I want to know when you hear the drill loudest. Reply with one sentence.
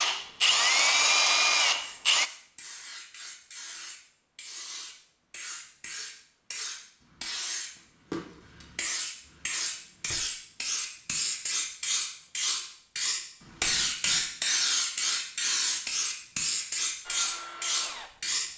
The volume of the drill peaks at 1 second.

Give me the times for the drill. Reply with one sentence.
The drill can be heard from 0.0 to 2.3 s and from 17.0 to 18.5 s.